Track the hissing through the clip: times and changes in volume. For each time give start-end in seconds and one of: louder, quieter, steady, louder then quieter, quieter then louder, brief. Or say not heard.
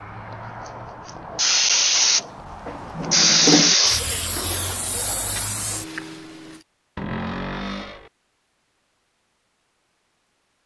0.0-6.6 louder then quieter.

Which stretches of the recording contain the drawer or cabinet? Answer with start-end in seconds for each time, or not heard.
2.1-3.8, 7.0-8.1.